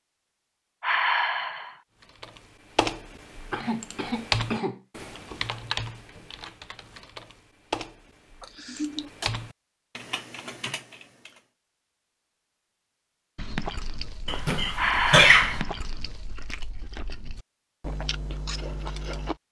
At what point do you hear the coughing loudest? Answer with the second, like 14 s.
15 s.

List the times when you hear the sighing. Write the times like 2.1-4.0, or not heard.
0.8-1.8, 14.8-15.7.